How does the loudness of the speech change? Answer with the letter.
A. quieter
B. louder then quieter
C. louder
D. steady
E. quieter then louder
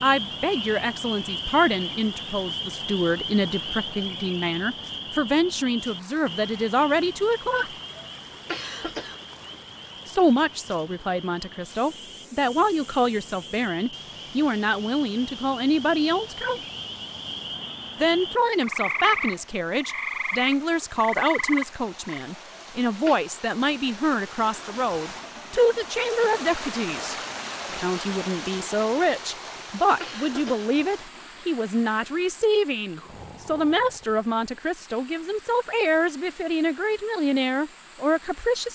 D.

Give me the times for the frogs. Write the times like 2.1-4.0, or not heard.
0.0-22.2.